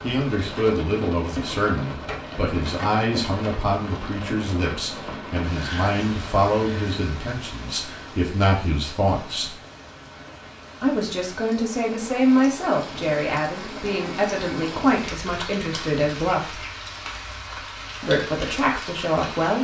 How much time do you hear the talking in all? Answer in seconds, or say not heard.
17 s.